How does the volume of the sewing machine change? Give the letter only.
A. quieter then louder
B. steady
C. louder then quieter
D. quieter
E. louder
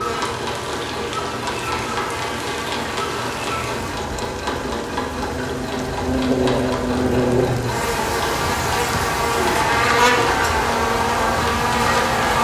B.